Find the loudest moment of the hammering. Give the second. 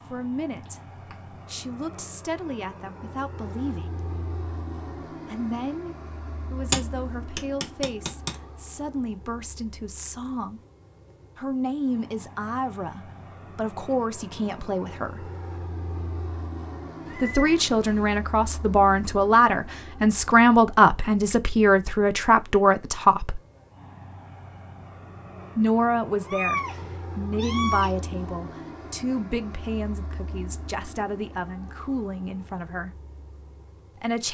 7 s.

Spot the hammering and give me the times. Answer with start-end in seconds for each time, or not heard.
6.6-8.4.